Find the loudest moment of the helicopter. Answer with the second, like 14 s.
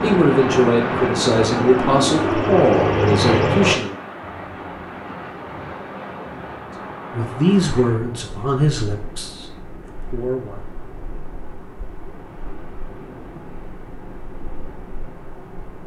3 s.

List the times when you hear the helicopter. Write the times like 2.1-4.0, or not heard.
0.0-3.8.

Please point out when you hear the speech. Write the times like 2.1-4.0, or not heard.
0.0-3.9, 7.1-10.7.